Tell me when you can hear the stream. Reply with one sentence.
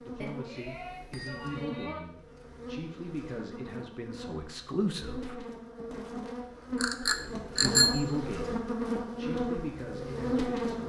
You can't hear the stream here.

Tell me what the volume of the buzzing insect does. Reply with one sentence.
The volume of the buzzing insect goes up.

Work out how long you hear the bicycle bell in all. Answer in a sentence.
The bicycle bell can be heard for 3 seconds in total.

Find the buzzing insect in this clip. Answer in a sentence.
The buzzing insect can be heard from 0.0 to 10.8 s.